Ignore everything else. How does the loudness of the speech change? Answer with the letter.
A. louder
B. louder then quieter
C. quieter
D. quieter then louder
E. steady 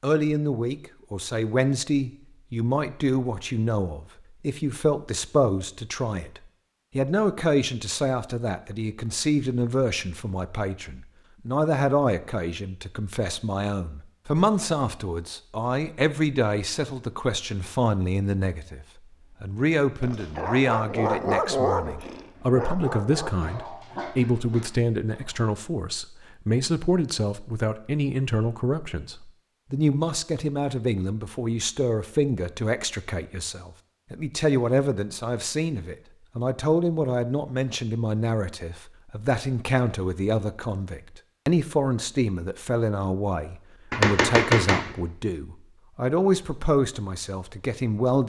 E.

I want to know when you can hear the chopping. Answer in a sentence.
You can hear the chopping from 43.9 to 45.0 s.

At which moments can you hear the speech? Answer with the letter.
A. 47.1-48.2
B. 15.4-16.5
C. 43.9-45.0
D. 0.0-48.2
D.